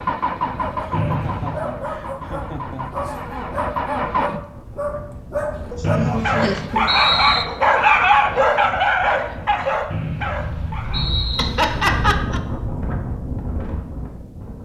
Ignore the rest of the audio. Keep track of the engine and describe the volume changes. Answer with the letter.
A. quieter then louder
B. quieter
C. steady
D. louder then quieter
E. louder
A.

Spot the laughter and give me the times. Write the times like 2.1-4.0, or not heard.
0.8-3.0, 5.7-6.9, 11.3-12.4.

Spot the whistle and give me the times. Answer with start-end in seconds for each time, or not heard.
0.9-1.6, 5.8-7.5, 9.9-11.5.